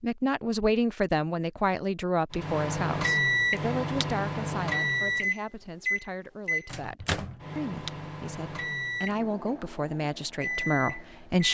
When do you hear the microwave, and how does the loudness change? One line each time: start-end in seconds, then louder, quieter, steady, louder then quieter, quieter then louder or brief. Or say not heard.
2.3-11.4 quieter.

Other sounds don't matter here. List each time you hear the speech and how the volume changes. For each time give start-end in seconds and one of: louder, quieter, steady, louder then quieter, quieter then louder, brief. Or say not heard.
0.0-11.4 quieter then louder.